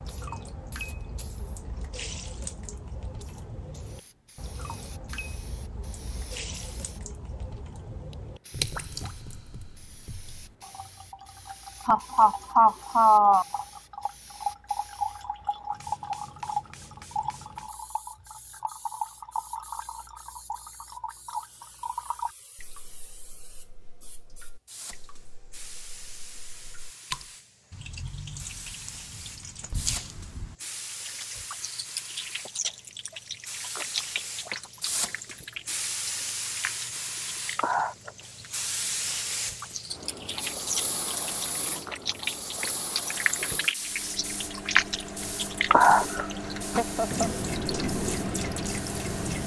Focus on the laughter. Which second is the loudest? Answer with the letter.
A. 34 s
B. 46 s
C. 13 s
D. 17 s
C.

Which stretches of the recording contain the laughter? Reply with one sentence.
The laughter can be heard from 11.8 to 13.4 s and from 46.0 to 47.3 s.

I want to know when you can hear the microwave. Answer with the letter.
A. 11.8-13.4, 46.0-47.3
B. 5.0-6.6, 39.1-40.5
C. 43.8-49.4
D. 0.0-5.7
C.